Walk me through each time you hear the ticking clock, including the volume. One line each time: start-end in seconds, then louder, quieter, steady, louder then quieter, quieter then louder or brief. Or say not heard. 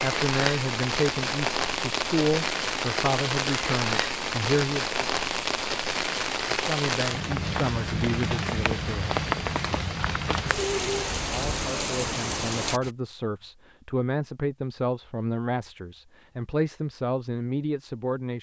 not heard.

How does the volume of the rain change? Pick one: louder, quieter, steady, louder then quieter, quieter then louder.
steady.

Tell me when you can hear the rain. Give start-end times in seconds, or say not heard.
0.0-12.9.